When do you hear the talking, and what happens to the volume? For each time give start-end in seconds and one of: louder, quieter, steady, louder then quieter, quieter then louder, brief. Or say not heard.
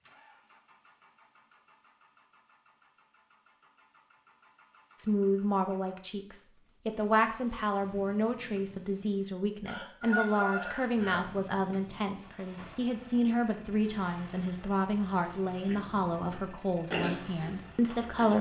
5.0-18.3 steady.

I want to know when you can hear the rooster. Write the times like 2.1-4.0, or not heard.
9.7-11.2.